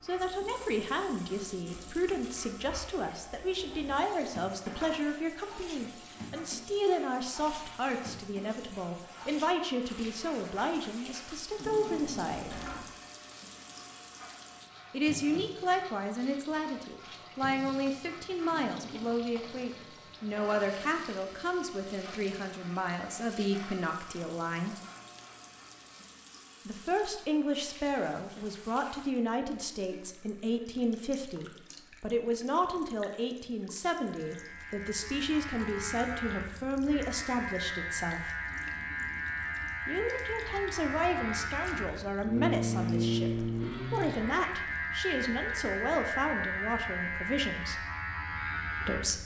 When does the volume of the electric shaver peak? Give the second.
43 s.